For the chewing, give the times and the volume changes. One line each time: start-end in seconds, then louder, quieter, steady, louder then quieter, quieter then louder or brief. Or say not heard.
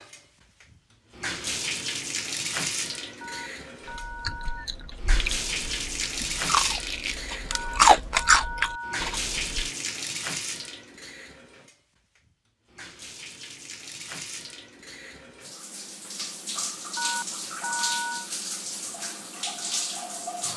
3.9-9.6 louder.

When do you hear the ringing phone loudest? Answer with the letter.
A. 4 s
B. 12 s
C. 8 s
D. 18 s
D.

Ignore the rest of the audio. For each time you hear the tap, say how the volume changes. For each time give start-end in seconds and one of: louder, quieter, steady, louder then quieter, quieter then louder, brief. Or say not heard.
0.0-20.5 quieter then louder.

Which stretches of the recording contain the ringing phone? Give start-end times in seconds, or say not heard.
3.2-4.7, 7.5-9.0, 16.9-18.3.